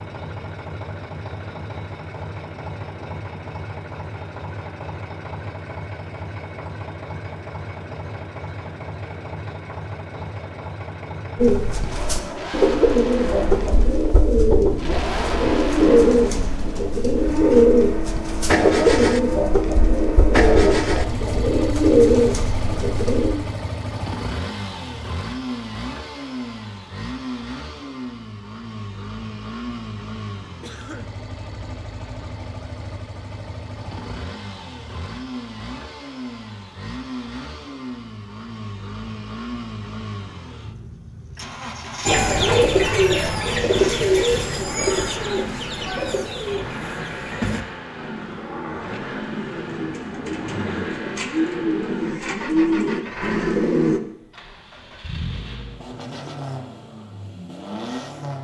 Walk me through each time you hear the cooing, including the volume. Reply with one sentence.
You can hear the cooing from 11.3 to 23.4 s, at a steady volume; and from 42.0 to 54.0 s, getting quieter then louder.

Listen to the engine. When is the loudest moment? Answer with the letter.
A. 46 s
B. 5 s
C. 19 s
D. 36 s
C.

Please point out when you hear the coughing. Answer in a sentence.
You can hear the coughing from 30.6 to 31.2 s.